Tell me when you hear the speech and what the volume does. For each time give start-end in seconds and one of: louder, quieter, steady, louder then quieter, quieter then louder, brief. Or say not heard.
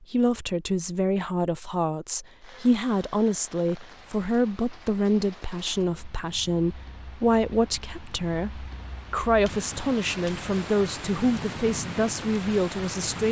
0.1-13.2 steady.